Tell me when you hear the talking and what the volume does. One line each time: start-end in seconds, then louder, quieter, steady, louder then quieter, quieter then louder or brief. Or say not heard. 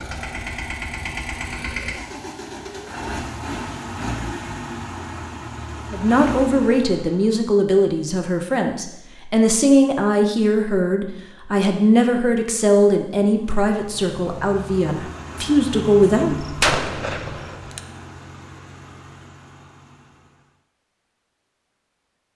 5.9-16.4 steady.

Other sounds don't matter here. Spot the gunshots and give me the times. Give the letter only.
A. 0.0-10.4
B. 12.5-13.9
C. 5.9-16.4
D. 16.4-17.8
D.